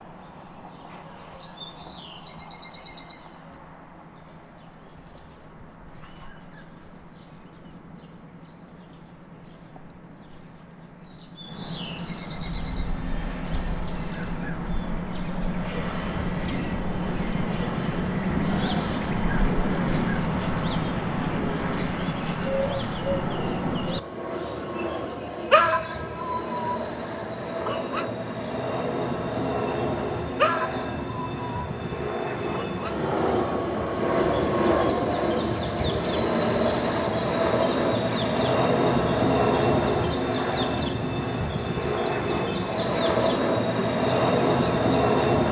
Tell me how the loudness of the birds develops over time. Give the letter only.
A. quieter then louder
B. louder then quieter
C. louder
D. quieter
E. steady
B.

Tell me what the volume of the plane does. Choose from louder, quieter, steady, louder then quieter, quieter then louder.
louder.